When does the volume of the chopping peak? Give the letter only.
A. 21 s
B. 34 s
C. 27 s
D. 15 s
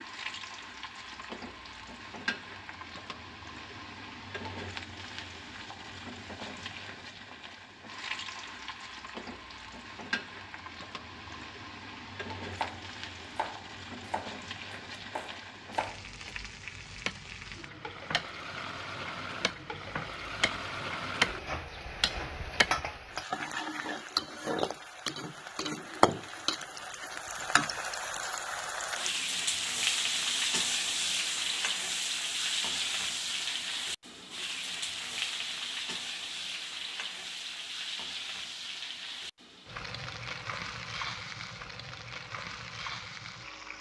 A.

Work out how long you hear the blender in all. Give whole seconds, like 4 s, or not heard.
not heard.